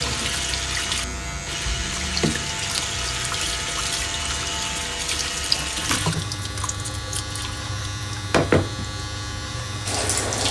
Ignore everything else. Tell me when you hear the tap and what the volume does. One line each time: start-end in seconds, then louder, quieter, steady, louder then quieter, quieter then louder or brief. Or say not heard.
0.0-10.4 quieter then louder.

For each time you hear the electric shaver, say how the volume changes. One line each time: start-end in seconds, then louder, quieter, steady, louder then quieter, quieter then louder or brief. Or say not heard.
0.0-10.4 steady.